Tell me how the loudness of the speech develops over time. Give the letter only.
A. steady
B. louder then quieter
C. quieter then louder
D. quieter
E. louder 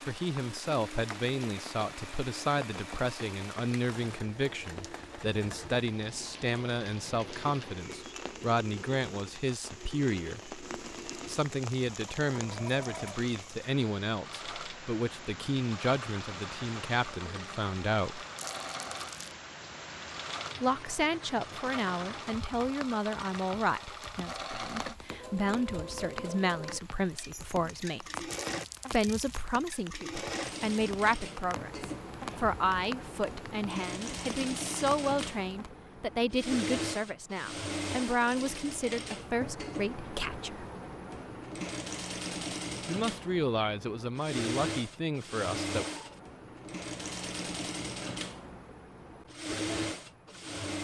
A.